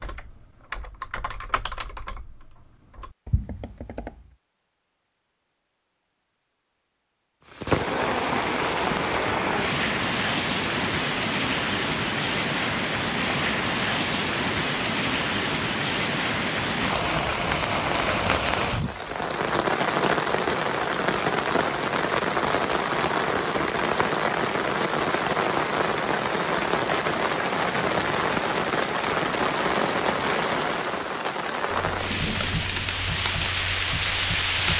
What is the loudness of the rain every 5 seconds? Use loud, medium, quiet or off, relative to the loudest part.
off, loud, loud, loud, loud, loud, loud.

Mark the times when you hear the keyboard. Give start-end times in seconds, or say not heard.
0.0-4.3, 31.7-34.7.